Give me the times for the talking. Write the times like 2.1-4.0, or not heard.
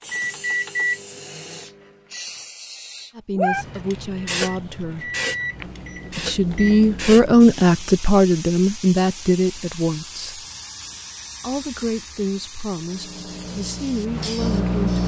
3.1-5.1, 6.1-10.4, 11.4-14.9.